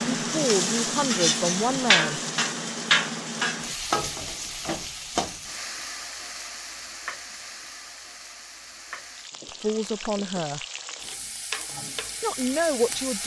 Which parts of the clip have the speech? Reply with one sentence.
You can hear the speech from 0.2 to 2.2 s, from 9.4 to 10.7 s and from 12.2 to 13.2 s.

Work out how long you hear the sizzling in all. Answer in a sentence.
You can hear the sizzling for 13 seconds altogether.